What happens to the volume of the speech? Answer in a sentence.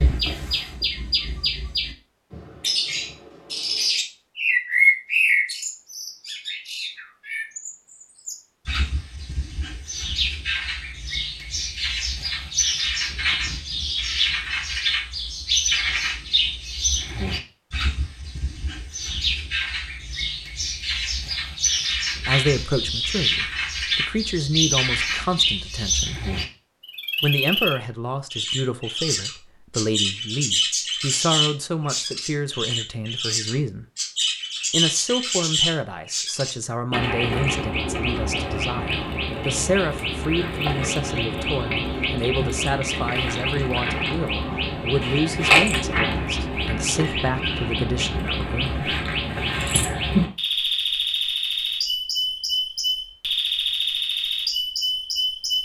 The loudness of the speech stays about the same.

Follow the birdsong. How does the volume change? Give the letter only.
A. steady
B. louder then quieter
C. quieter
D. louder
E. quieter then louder
A.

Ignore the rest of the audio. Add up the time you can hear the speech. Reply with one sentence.
The speech can be heard for 25 seconds in total.